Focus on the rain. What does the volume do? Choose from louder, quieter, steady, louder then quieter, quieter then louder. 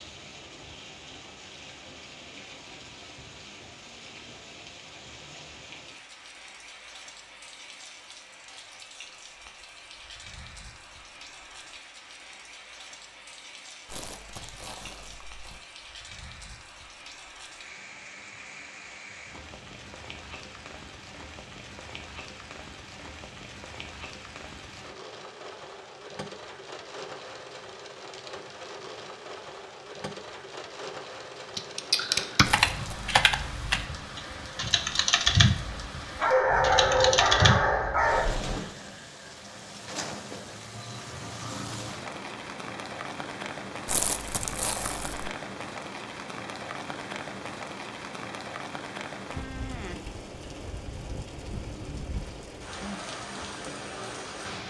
louder.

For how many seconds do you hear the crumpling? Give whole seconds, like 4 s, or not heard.
4 s.